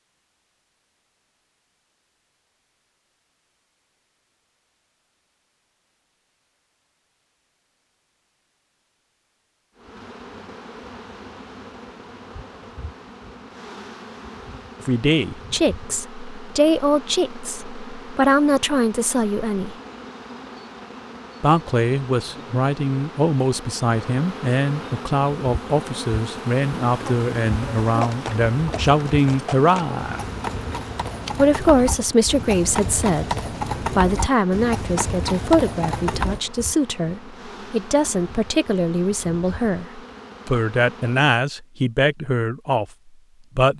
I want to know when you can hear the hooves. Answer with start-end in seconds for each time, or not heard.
28.0-36.4.